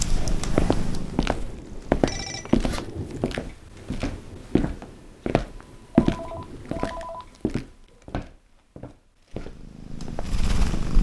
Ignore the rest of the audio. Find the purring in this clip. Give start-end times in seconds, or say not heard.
0.0-2.2, 9.3-10.9.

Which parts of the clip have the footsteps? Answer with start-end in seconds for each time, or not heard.
0.3-10.9.